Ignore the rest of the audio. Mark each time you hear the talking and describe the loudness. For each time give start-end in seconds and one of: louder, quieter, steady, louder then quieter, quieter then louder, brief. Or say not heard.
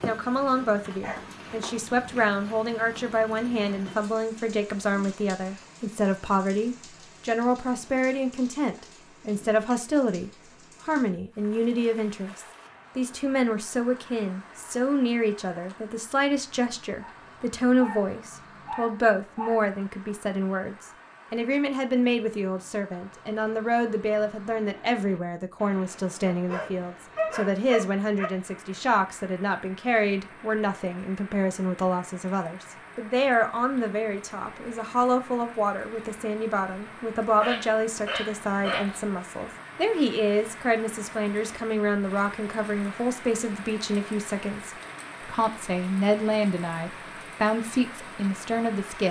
0.0-49.0 steady.